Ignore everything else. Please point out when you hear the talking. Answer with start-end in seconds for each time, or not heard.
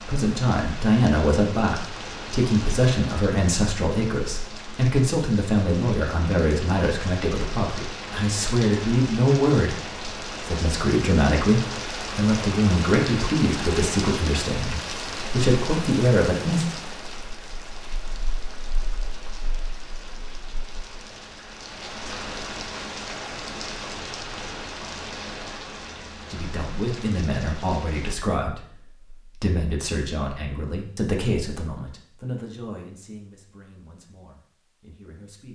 0.0-16.6, 26.3-35.5.